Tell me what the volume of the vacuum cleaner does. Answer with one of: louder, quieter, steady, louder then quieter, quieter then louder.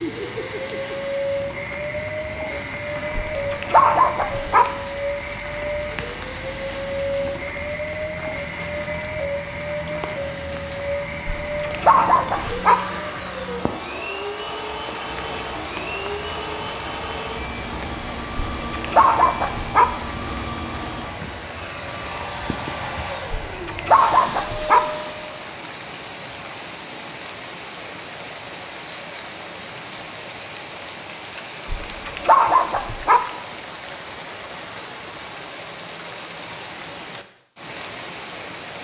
steady.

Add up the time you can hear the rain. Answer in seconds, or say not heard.
39 s.